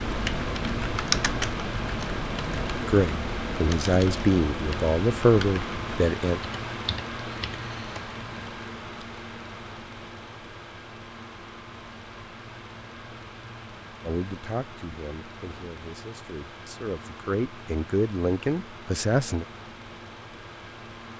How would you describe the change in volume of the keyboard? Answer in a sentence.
The loudness of the keyboard goes down.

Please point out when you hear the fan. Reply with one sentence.
You can hear the fan from 0.0 to 21.1 s.